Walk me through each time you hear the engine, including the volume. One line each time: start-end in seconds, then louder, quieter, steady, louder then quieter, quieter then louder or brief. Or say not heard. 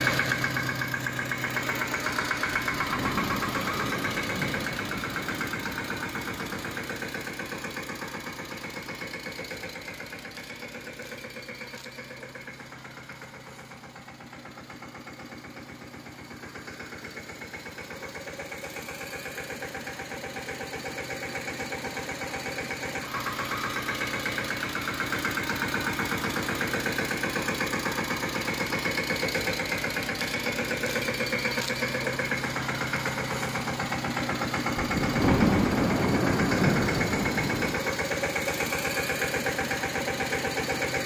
0.0-41.0 quieter then louder.